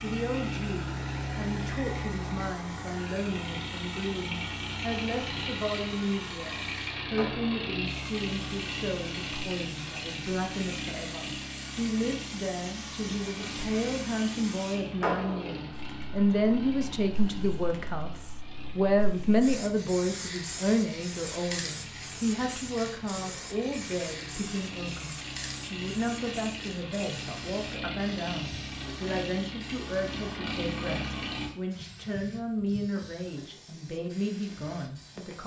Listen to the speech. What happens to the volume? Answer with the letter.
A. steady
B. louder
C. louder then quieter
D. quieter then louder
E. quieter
C.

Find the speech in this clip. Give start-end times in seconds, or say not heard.
0.0-35.4.